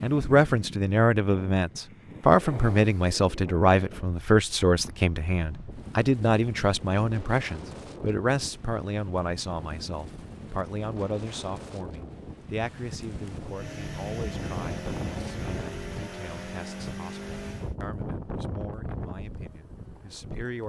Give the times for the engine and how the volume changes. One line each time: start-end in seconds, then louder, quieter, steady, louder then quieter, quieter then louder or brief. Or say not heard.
13.4-17.8 steady.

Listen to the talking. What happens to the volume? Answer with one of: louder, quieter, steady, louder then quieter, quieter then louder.
quieter.